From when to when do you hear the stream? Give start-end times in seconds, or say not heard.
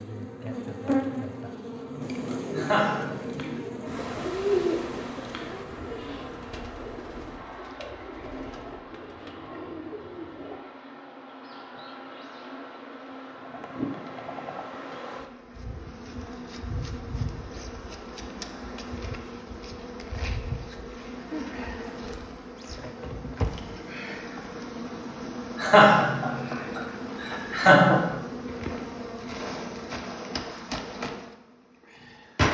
not heard.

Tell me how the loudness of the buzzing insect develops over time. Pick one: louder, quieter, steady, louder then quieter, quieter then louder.
quieter then louder.